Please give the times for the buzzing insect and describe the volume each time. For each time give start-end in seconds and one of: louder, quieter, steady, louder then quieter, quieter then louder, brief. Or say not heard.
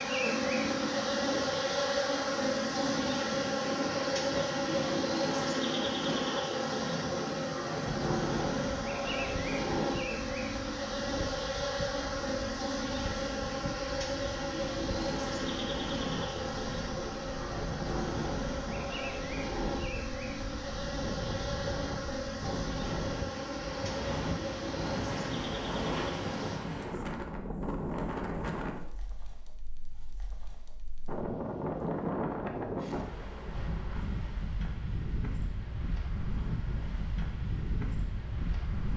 0.0-26.6 quieter.